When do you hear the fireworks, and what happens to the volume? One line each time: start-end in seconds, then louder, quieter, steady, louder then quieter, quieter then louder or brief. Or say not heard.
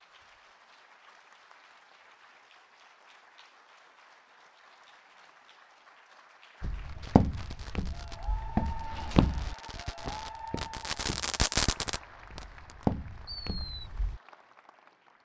7.0-13.9 louder then quieter.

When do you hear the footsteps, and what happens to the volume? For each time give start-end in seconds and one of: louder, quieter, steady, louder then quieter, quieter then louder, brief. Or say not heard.
6.6-14.2 quieter then louder.